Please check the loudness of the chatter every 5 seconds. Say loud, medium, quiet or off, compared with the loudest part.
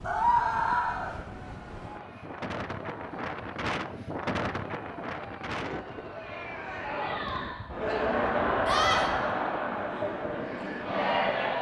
quiet, loud, loud.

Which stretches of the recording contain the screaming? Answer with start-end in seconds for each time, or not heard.
0.0-1.1, 8.7-9.1.